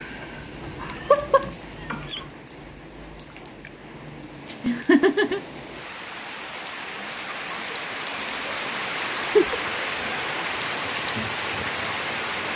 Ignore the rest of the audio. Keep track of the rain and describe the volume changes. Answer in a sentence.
The volume of the rain goes up.